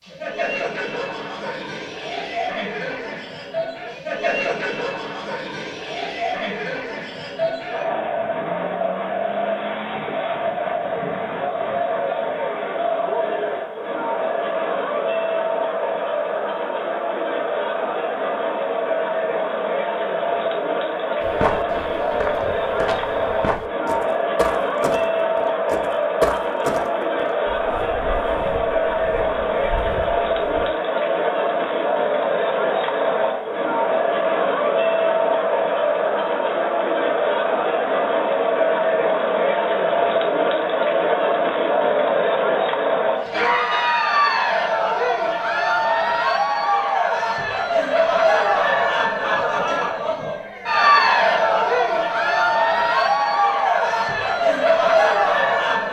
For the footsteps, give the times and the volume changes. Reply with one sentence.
The footsteps can be heard from 21.2 to 30.7 s, getting louder then quieter.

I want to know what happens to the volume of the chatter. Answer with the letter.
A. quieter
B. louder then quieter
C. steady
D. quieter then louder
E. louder
E.